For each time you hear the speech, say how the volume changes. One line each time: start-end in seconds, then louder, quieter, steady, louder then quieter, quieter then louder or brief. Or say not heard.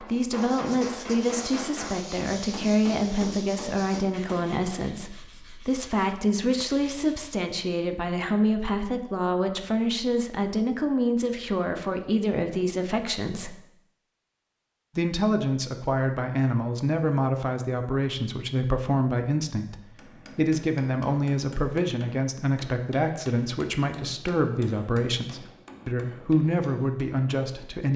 0.0-13.6 steady
14.9-27.9 steady.